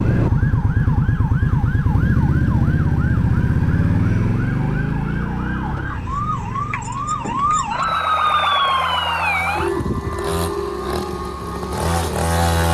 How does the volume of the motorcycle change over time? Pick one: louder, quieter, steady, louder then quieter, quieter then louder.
quieter then louder.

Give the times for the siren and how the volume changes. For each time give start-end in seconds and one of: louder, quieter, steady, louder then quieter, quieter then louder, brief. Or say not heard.
0.0-12.4 louder then quieter.